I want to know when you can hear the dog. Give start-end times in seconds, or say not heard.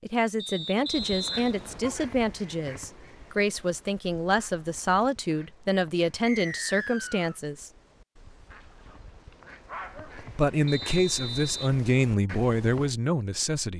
1.6-2.1, 8.8-10.2.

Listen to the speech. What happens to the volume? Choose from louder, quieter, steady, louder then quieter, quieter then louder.
steady.